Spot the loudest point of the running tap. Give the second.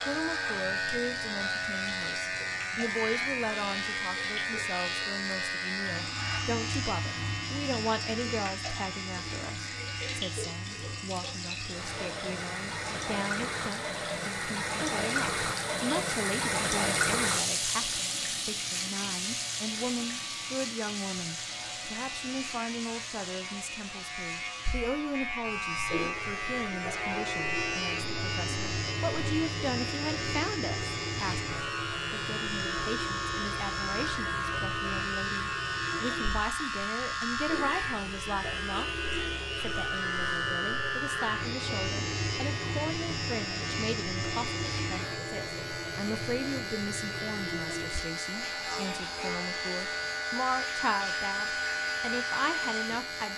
17 s.